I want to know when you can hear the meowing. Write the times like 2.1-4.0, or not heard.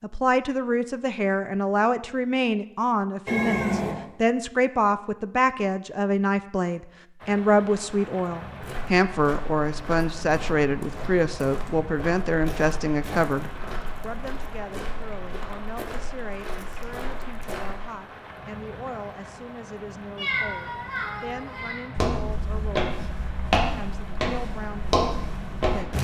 3.2-4.0, 20.1-21.9.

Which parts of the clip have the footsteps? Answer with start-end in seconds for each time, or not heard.
8.6-17.8, 21.9-25.9.